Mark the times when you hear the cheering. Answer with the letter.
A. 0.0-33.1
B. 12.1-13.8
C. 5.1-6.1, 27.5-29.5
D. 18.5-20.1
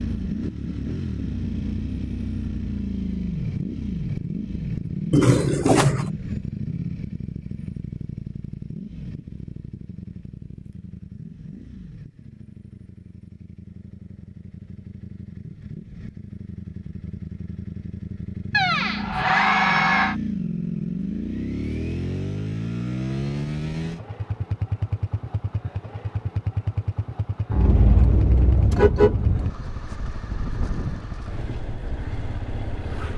D.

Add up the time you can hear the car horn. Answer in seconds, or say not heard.
3 s.